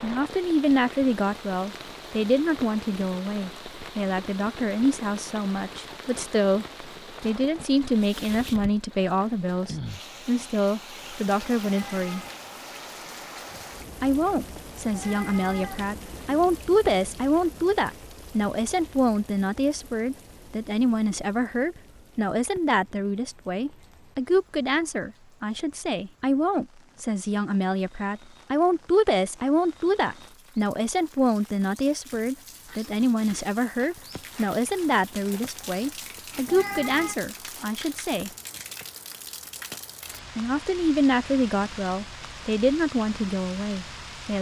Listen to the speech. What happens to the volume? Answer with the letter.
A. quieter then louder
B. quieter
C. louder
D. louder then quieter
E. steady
E.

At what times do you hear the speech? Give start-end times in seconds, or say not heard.
0.0-12.2, 14.0-38.3, 40.4-44.3.